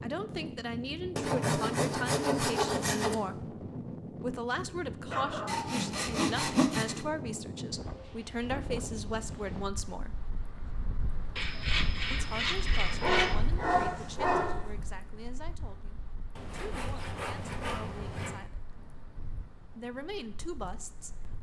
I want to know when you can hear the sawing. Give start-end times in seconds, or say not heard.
1.1-3.1, 5.5-7.0, 11.3-13.3, 16.4-18.4.